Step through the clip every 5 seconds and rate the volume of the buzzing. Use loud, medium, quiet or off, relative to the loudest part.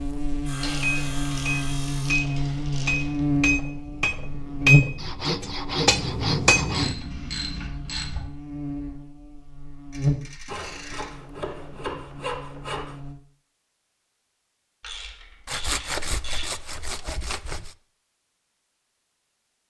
loud, quiet, medium, off.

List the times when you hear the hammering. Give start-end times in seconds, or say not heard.
0.7-7.0.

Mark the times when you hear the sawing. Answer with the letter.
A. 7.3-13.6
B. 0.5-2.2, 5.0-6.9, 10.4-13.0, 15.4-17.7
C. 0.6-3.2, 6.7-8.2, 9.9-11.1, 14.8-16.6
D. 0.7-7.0
B.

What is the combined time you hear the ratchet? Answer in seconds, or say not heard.
7 s.